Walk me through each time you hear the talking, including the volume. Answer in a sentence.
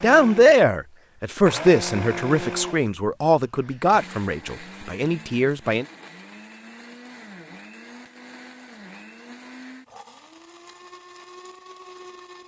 You can hear the talking from 0.0 to 5.8 s, getting quieter.